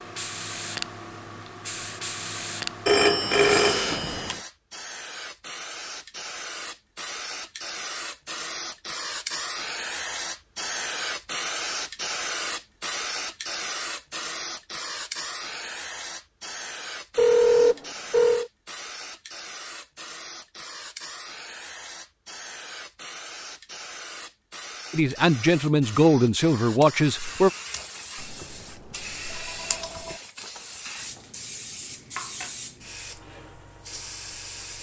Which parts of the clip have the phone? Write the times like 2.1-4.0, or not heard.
2.9-4.4, 17.1-18.5, 28.1-30.2.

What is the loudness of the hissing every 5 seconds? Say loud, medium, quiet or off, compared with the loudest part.
loud, loud, loud, medium, medium, medium, medium.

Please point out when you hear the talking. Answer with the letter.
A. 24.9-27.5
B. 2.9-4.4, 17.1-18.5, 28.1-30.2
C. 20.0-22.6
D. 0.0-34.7
A.